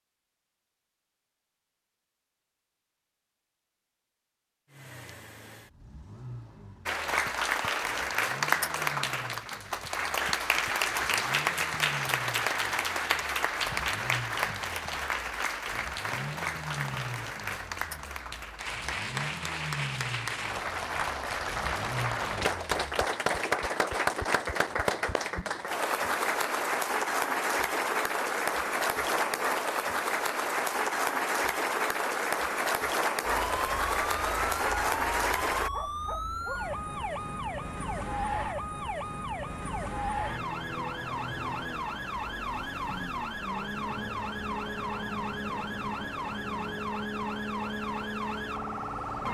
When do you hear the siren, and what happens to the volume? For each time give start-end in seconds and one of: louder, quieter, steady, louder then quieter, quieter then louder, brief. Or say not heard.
33.2-49.2 steady.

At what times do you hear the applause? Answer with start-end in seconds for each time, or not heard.
6.8-35.7.